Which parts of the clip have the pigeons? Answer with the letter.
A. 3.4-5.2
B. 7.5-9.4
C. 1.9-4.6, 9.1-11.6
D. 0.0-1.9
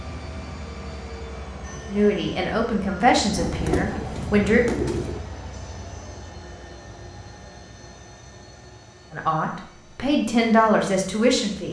A.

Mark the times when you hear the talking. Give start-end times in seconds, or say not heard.
1.9-4.6, 9.1-11.6.